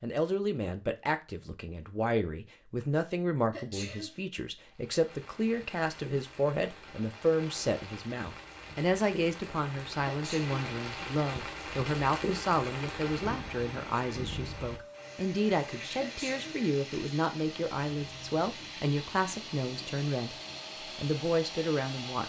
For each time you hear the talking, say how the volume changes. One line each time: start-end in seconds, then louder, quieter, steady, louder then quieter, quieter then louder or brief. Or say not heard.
0.0-20.4 steady
20.9-22.2 brief.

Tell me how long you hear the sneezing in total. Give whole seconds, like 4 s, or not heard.
2 s.